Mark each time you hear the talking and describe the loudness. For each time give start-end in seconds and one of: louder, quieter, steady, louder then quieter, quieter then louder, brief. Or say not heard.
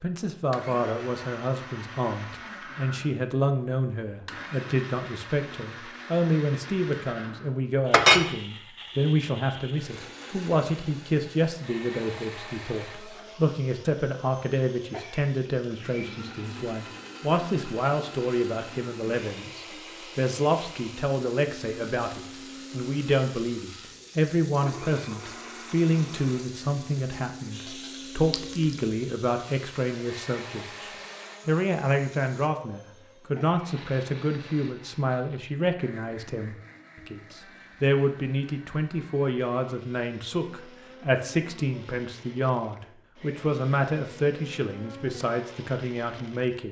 0.0-46.6 steady.